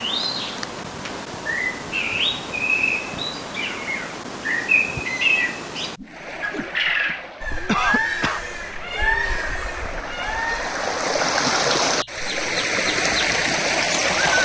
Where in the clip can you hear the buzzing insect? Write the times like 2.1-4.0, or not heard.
not heard.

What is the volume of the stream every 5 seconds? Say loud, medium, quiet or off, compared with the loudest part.
off, quiet, loud.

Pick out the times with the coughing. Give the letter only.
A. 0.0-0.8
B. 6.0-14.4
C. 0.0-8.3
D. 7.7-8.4
D.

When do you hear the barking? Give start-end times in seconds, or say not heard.
not heard.